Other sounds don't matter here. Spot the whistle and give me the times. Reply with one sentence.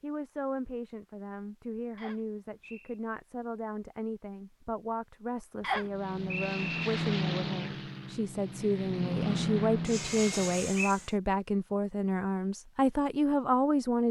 You can hear the whistle from 1.9 to 3.0 s, from 5.6 to 6.8 s and from 10.3 to 10.9 s.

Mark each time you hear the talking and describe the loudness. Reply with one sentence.
The talking can be heard from 0.0 to 14.0 s, getting louder.